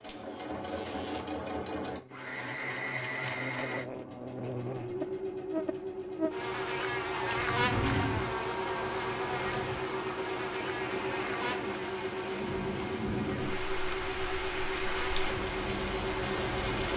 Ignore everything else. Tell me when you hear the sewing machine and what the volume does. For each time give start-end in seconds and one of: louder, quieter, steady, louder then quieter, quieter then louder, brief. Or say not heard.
0.0-16.9 steady.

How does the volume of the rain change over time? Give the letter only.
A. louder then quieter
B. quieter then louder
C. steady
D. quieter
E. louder
E.